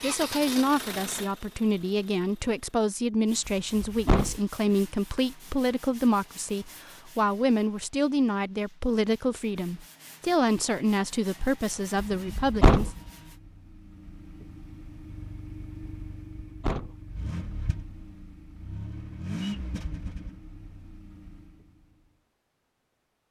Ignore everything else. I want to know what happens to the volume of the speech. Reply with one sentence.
The loudness of the speech stays about the same.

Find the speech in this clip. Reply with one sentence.
You can hear the speech from 0.0 to 12.9 s.